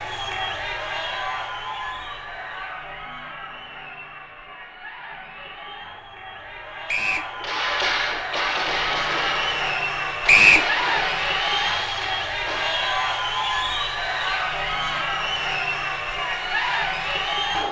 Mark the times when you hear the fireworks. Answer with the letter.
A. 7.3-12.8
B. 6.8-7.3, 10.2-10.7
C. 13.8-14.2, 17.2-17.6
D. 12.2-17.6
A.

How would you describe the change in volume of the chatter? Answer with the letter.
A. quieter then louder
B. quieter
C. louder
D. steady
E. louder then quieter
A.